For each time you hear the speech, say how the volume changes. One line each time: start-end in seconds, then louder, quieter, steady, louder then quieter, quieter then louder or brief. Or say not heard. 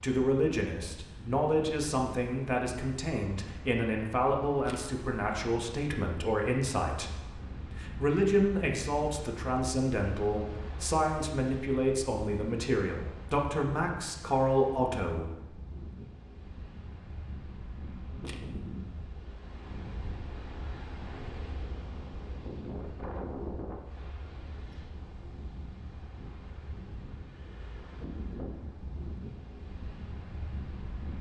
0.0-15.6 steady.